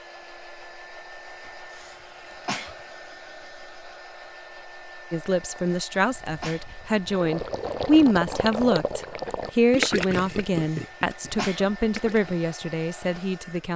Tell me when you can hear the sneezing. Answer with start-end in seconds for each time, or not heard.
1.8-2.8, 5.7-6.7, 10.7-11.7.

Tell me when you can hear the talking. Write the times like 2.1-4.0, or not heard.
5.1-13.7.